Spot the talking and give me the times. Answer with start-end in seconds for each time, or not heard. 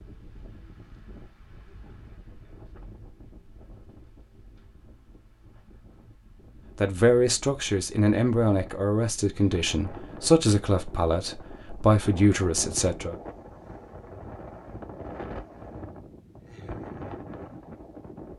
6.8-13.2.